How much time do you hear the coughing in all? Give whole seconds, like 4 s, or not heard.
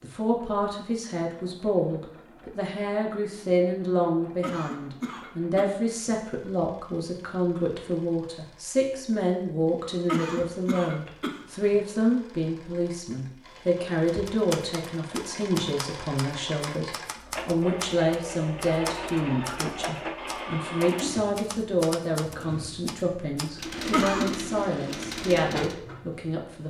4 s.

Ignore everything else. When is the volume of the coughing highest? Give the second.
24 s.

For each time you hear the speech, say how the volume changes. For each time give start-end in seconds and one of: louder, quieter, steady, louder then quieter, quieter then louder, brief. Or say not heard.
0.0-26.6 steady.